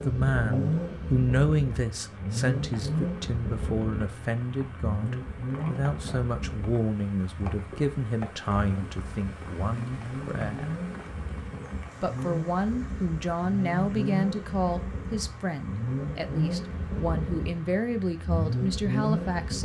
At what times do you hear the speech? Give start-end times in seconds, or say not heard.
0.1-10.8, 12.0-19.6.